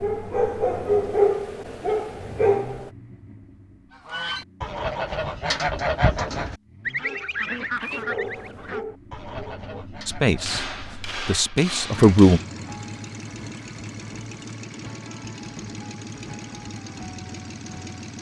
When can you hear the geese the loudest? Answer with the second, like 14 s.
6 s.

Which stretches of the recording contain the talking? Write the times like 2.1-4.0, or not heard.
10.1-12.4.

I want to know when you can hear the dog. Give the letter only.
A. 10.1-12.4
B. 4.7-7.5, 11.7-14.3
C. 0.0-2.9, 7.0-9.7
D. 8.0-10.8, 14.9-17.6
C.